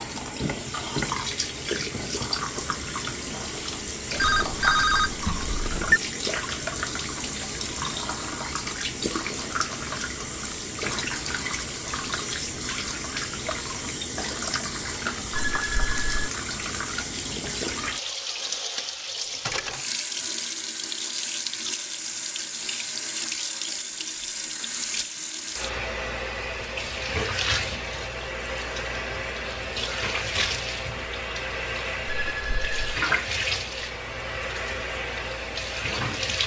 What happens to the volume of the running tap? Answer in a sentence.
The loudness of the running tap stays about the same.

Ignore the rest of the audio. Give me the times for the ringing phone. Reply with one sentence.
You can hear the ringing phone from 4.2 to 6.0 s, from 15.3 to 16.3 s and from 32.0 to 32.8 s.